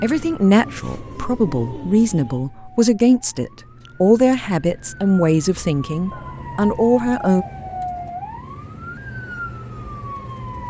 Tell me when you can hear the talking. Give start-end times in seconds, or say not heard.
0.0-7.5.